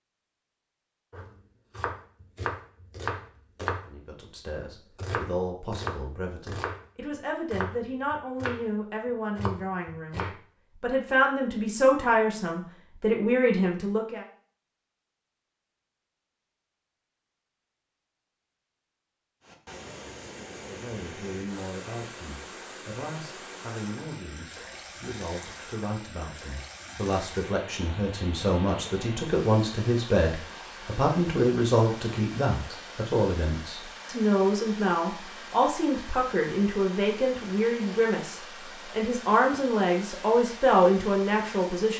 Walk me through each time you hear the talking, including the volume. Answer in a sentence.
The talking can be heard from 3.9 to 14.2 s, getting louder; and from 20.5 to 41.9 s, getting louder.